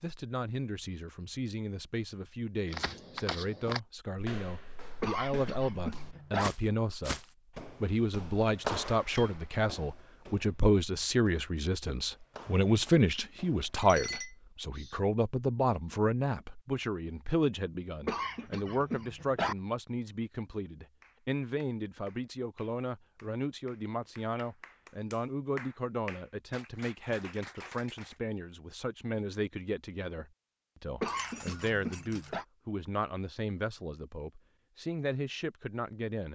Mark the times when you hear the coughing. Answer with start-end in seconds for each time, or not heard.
5.0-6.5, 18.1-19.6, 31.0-32.5.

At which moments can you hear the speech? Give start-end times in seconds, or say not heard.
0.0-7.2, 7.8-36.3.